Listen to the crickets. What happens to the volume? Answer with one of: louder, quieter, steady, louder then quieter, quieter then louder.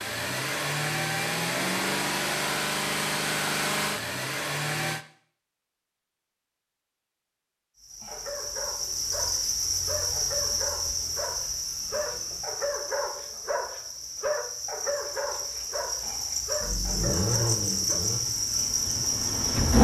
quieter then louder.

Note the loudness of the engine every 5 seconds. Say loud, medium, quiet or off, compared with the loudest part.
loud, off, off, loud.